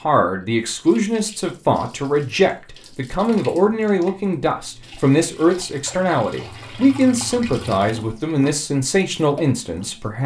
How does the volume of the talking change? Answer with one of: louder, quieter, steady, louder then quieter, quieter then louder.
steady.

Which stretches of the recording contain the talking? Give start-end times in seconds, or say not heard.
0.0-10.2.